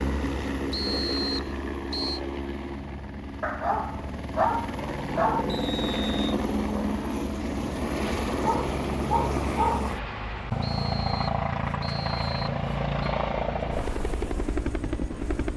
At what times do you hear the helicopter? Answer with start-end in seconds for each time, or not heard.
0.0-15.5.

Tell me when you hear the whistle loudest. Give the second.
1 s.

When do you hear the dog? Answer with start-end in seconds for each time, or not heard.
3.4-5.5, 8.4-9.9.